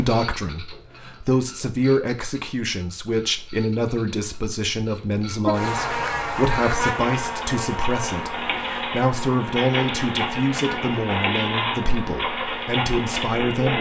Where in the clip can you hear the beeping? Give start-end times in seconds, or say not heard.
not heard.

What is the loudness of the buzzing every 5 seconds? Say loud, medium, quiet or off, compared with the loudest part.
off, loud, medium.